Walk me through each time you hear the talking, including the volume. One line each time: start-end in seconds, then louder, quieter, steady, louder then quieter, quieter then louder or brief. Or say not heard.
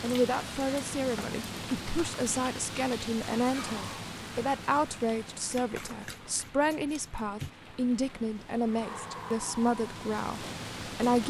0.0-11.2 steady.